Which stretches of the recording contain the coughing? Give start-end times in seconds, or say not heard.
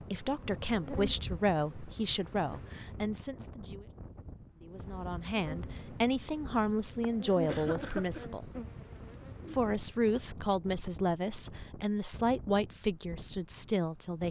7.5-8.2.